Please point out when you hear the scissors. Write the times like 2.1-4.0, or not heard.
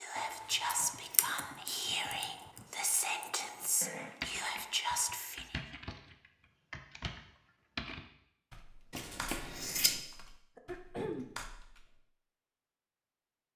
0.1-1.2, 8.9-10.0.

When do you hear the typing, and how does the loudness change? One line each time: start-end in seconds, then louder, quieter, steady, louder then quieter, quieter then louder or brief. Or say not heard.
0.8-12.1 louder then quieter.